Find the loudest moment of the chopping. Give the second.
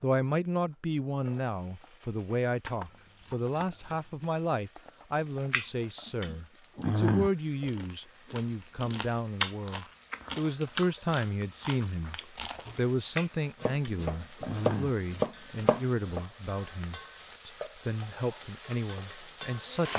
15 s.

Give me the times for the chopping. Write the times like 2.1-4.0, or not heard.
2.6-4.3, 13.6-16.2.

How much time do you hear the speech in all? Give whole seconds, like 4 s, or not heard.
20 s.